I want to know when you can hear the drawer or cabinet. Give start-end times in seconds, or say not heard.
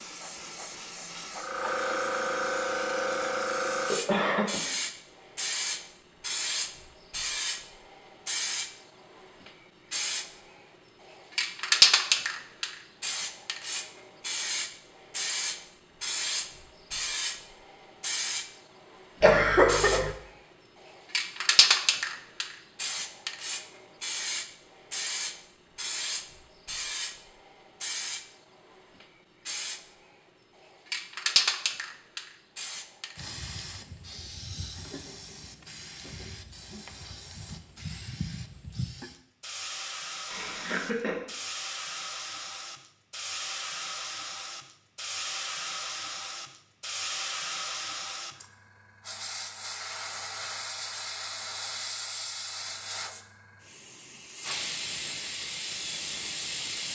not heard.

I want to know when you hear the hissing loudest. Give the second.
12 s.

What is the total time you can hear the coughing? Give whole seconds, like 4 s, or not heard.
3 s.